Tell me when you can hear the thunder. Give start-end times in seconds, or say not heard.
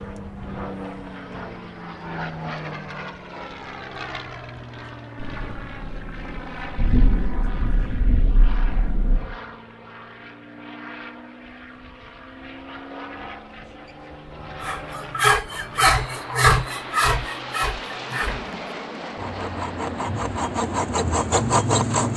5.2-9.3.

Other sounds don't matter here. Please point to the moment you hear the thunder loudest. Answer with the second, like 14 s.
7 s.